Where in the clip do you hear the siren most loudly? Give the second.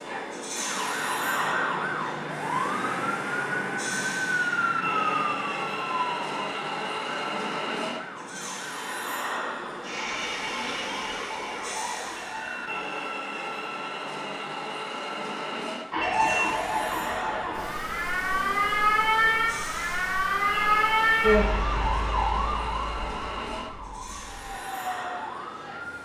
21 s.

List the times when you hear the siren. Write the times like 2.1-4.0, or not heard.
0.1-12.8, 15.9-26.0.